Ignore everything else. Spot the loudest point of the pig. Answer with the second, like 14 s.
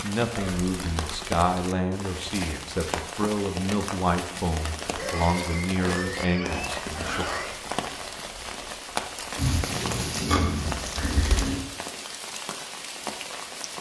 10 s.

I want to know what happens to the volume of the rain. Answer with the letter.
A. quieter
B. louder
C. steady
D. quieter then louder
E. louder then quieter
C.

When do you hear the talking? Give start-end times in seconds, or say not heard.
0.0-7.2.